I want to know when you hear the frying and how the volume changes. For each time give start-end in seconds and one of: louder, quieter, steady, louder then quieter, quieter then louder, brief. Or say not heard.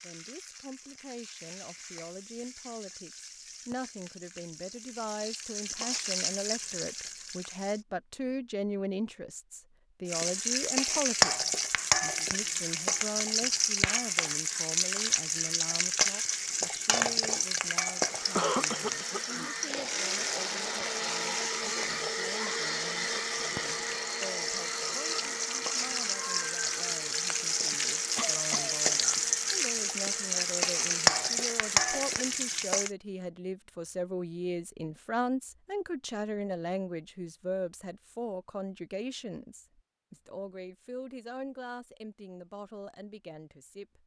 0.0-7.8 louder
10.1-32.9 quieter then louder.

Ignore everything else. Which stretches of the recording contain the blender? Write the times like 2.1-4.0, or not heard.
18.0-32.5.